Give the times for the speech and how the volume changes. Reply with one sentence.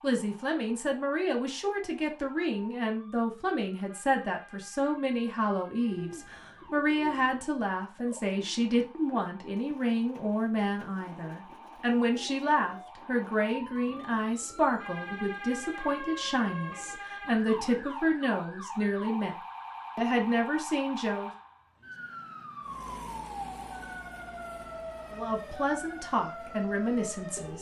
You can hear the speech from 0.0 to 19.4 s, at a steady volume; briefly from 19.9 to 21.3 s; and briefly from 25.1 to 27.5 s.